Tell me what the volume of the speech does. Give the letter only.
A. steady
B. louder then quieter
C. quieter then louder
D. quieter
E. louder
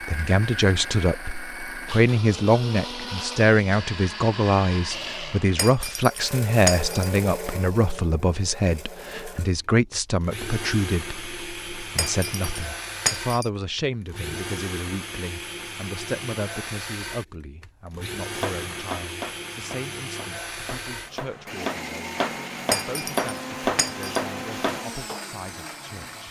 D.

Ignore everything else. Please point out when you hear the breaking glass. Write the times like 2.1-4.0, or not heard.
5.5-7.1, 11.9-13.5, 22.7-24.1.